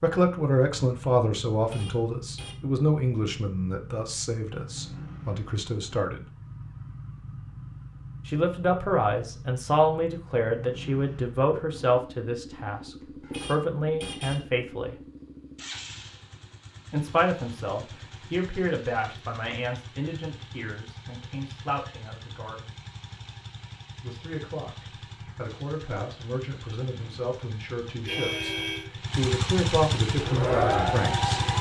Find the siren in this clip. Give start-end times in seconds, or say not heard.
30.1-31.5.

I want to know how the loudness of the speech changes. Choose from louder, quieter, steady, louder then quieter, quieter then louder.
quieter then louder.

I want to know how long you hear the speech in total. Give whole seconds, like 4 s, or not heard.
26 s.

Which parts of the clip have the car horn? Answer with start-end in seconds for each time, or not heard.
1.6-2.5, 13.2-14.4, 28.1-28.9.